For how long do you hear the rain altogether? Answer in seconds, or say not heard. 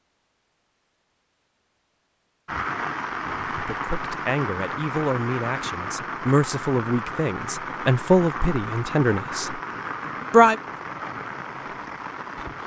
10 s.